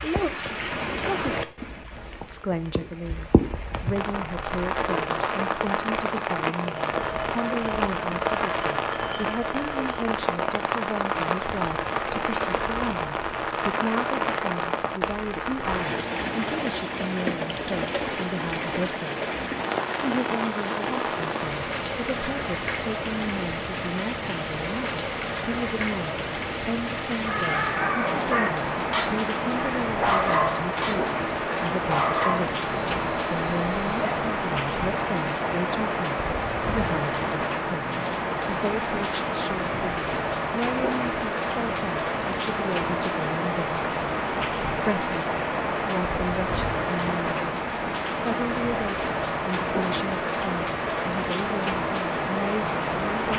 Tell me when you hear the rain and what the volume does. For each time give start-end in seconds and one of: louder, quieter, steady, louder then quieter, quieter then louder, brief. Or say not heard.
0.0-53.3 steady.